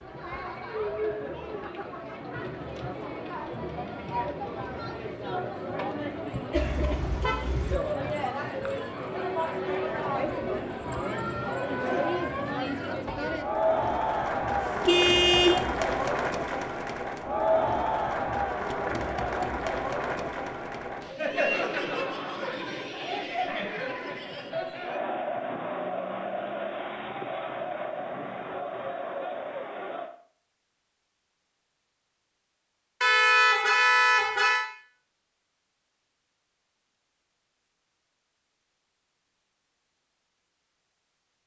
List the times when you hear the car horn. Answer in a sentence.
The car horn can be heard from 6.5 to 7.8 s, from 14.8 to 15.7 s and from 33.0 to 34.6 s.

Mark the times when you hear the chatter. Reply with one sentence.
The chatter can be heard from 0.0 to 30.1 s.